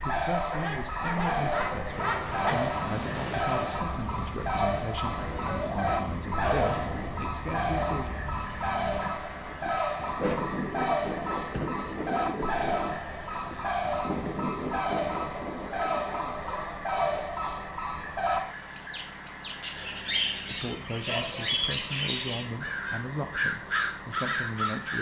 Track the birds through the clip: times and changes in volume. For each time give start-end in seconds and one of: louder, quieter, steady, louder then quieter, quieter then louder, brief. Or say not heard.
0.0-24.9 steady.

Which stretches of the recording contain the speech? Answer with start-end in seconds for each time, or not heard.
0.1-8.1, 20.4-24.9.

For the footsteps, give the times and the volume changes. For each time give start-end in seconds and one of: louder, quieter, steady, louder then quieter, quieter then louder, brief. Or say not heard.
not heard.